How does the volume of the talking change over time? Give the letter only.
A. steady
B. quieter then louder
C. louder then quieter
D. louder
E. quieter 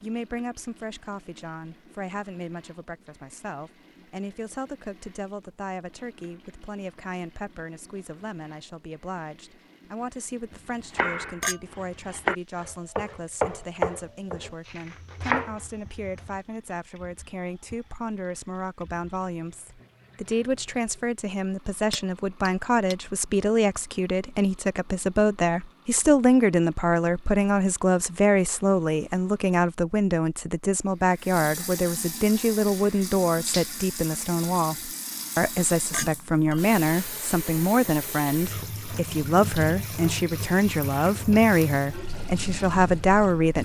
D.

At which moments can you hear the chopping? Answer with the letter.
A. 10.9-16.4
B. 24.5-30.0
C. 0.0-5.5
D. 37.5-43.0
A.